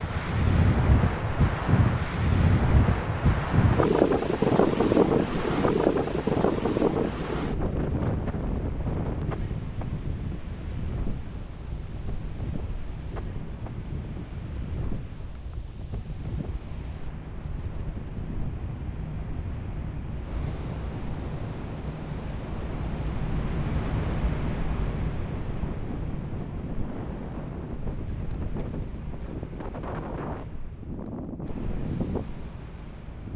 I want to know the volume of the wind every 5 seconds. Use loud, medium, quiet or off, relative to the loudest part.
loud, loud, quiet, quiet, quiet, quiet, quiet.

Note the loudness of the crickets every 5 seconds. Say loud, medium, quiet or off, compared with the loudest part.
medium, medium, medium, medium, loud, medium, medium.